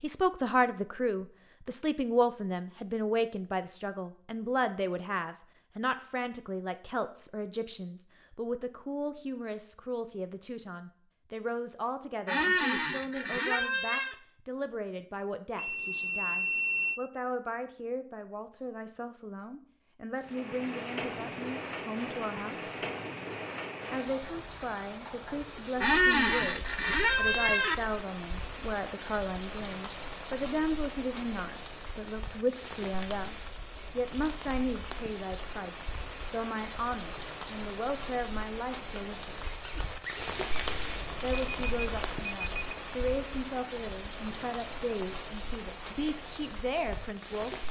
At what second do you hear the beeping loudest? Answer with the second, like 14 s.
17 s.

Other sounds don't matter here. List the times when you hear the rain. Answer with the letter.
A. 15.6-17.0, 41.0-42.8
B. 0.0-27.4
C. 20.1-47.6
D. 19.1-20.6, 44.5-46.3
C.